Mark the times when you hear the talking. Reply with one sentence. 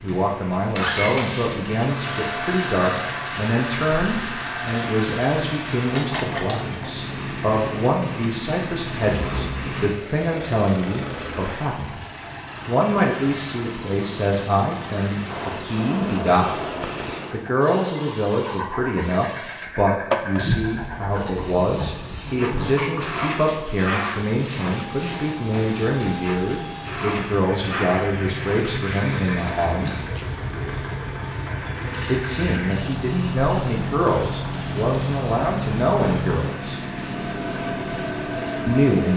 The talking can be heard from 0.0 to 12.0 s, from 12.7 to 16.6 s, from 17.3 to 29.9 s, from 32.0 to 36.8 s and from 38.6 to 39.1 s.